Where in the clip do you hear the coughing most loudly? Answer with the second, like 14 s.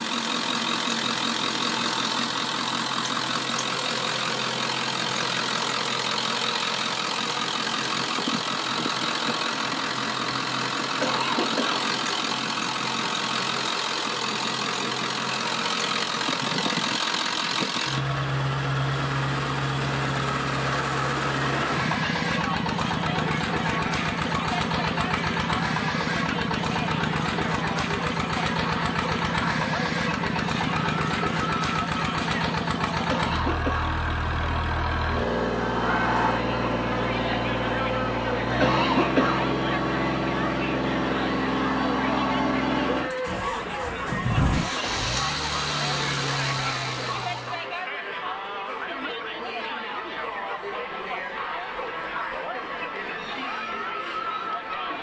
39 s.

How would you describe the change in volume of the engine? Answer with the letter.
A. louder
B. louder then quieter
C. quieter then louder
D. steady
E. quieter
D.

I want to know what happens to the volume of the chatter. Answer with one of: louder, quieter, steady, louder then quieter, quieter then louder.
steady.